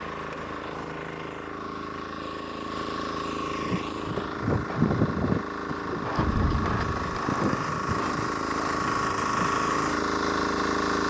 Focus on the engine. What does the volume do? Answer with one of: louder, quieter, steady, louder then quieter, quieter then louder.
louder.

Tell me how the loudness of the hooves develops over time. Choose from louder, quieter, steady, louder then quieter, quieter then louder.
quieter.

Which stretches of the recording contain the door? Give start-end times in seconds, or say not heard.
not heard.